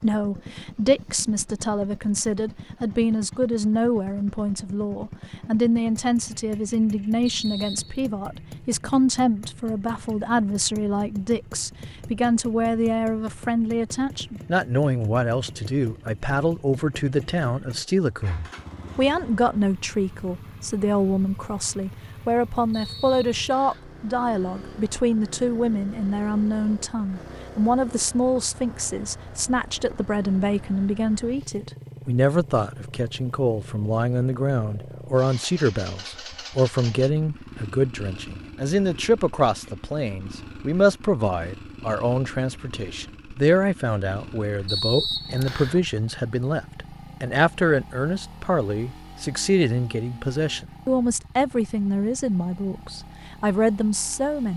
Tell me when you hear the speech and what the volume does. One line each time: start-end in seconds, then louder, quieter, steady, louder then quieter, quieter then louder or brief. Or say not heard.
0.0-54.5 steady.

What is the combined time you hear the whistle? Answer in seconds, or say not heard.
3 s.